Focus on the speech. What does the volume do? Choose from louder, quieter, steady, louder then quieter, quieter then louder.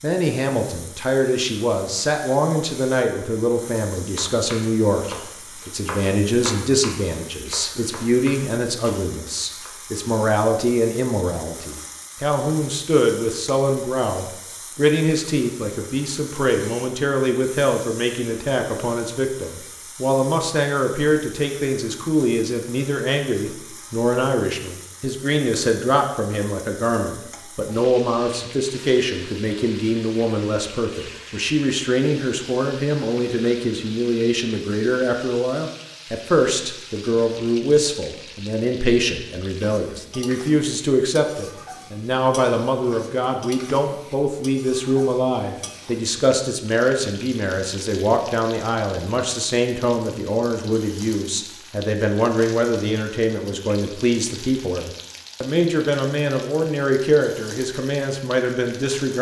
steady.